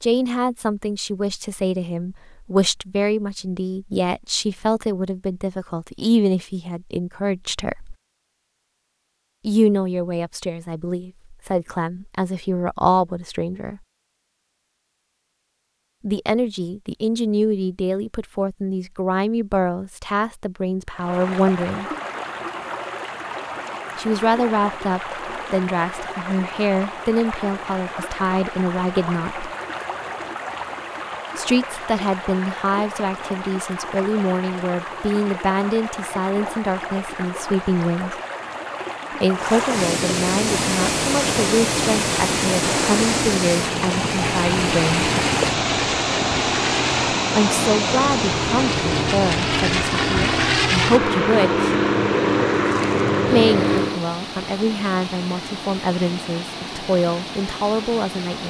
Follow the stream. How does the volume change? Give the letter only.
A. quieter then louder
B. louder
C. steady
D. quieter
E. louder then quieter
E.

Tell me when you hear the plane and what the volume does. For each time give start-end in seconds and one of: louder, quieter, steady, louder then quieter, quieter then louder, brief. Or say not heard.
40.4-54.0 louder.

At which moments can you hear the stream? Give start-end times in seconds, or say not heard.
20.9-58.4.